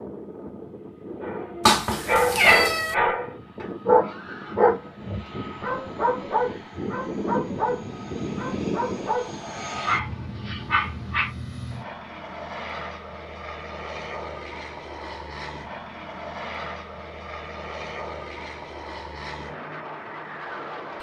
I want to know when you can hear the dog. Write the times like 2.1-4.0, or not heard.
1.2-11.3.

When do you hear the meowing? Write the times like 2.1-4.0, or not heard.
1.6-3.0.